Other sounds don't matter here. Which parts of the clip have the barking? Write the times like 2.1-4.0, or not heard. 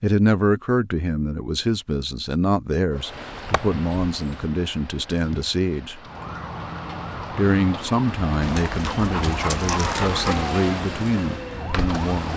2.9-4.5, 8.4-10.5.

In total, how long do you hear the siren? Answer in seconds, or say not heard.
6 s.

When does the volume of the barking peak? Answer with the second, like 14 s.
10 s.